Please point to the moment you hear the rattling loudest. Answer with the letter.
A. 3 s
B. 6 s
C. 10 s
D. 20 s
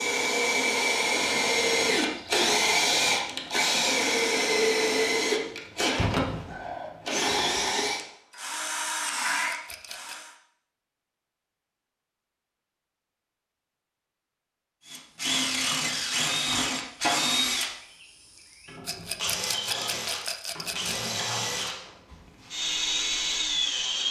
D.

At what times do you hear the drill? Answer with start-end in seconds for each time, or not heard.
0.0-10.3, 14.8-24.0.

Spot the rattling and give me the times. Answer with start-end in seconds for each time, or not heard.
9.3-10.2, 18.9-21.1.